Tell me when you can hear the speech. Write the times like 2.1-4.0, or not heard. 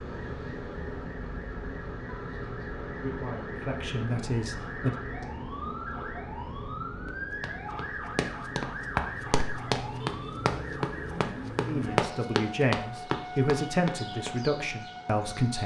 2.3-5.0, 11.7-15.6.